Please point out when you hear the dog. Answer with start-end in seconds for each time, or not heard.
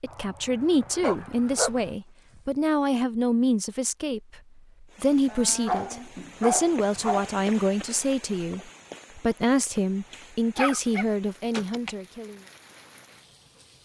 1.0-1.7, 5.2-7.3, 10.6-11.9.